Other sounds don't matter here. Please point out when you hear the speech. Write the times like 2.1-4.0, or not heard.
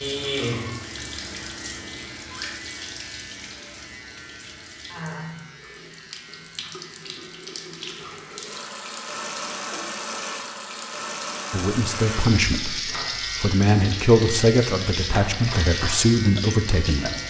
11.5-17.2.